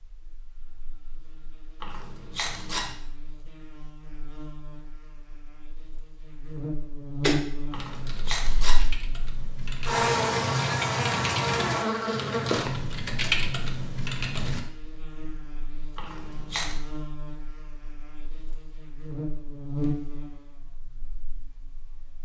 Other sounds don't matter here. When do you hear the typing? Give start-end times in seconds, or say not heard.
7.2-14.6.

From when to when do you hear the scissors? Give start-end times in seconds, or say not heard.
1.8-3.0, 7.7-8.8, 15.9-16.8.